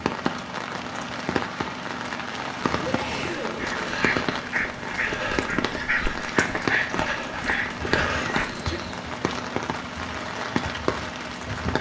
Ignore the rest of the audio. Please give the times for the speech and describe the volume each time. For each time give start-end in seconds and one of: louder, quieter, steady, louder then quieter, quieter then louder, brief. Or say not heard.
not heard.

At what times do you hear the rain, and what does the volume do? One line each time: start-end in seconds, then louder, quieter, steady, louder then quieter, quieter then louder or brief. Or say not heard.
0.0-11.7 steady.